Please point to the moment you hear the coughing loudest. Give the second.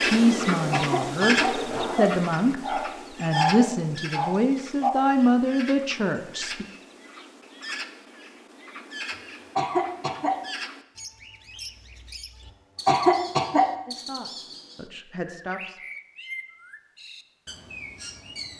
13 s.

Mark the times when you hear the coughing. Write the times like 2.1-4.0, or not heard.
0.7-2.0, 9.1-10.4, 12.8-13.8.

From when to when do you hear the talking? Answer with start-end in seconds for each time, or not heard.
0.0-6.7, 13.8-15.8.